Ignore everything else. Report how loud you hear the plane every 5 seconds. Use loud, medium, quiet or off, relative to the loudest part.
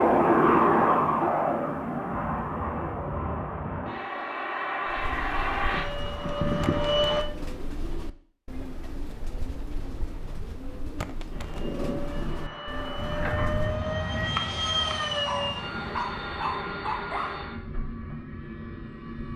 loud, loud, medium, medium.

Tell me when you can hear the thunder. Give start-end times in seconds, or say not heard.
12.9-16.0.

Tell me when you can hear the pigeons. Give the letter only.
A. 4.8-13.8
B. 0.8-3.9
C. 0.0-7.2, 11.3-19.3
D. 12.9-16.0
A.